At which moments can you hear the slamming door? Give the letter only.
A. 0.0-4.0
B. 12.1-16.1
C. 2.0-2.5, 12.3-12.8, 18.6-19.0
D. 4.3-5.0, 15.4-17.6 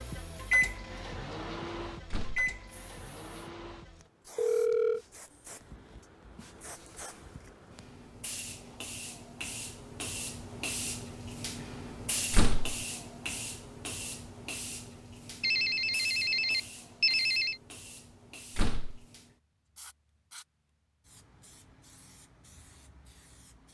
C.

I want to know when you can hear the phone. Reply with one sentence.
You can hear the phone from 4.3 to 5.0 s and from 15.4 to 17.6 s.